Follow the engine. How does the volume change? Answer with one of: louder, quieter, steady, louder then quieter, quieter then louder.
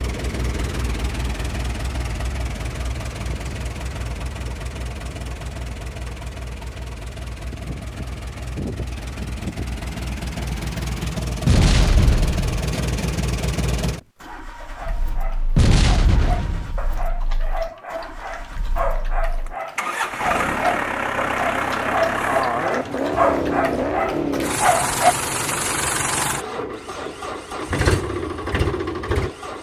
louder.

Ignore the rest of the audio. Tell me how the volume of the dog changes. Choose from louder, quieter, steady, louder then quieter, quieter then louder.
louder.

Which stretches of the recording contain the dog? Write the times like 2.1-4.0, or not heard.
14.6-25.1.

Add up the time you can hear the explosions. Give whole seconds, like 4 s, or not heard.
2 s.